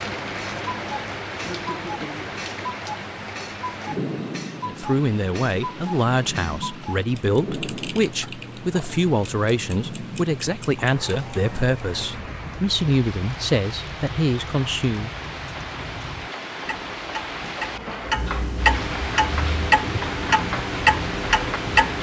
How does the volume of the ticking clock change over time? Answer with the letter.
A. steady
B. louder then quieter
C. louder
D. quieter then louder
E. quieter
C.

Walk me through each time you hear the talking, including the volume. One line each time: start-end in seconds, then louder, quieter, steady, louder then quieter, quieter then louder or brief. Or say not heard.
4.7-15.1 steady.